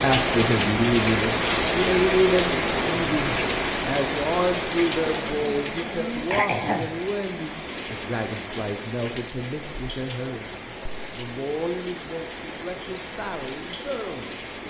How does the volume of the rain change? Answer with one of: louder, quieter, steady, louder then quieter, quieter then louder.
quieter.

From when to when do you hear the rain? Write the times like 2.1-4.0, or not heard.
0.0-14.6.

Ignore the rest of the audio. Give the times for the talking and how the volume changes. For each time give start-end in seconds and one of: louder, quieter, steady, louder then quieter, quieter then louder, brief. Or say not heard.
0.0-14.6 quieter.